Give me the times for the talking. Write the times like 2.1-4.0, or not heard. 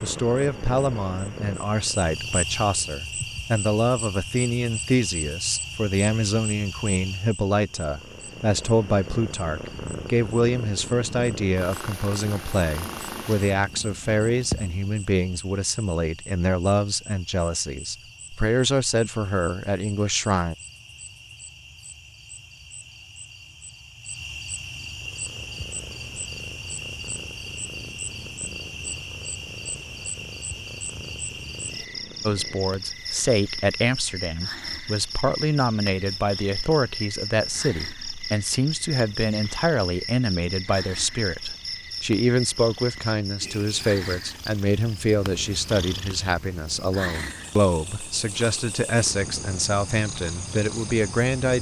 0.0-20.6, 32.2-51.5.